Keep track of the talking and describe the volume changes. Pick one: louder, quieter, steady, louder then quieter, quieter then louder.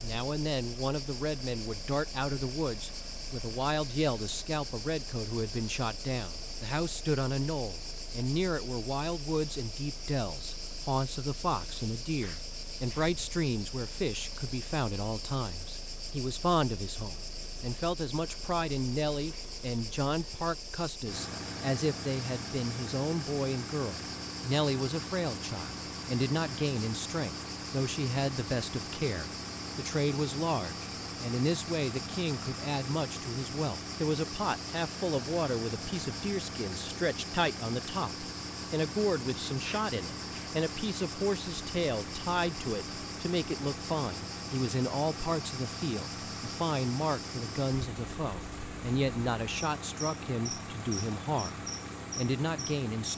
steady.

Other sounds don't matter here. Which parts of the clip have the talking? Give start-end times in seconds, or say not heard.
0.0-53.1.